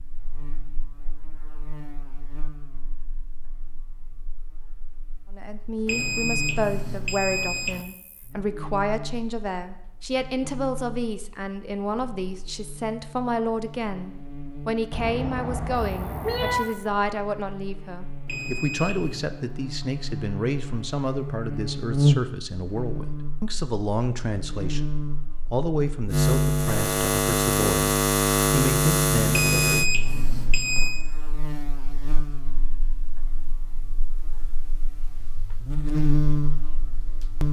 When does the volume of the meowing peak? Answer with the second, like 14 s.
16 s.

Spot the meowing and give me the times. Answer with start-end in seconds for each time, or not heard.
14.9-16.7.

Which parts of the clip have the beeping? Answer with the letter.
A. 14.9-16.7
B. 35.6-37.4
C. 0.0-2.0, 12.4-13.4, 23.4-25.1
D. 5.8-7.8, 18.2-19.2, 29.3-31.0
D.